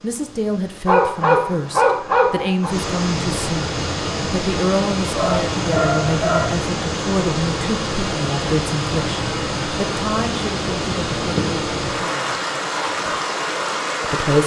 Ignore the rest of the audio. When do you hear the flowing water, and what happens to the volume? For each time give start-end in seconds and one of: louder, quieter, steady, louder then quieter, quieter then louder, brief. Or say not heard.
0.0-14.4 louder.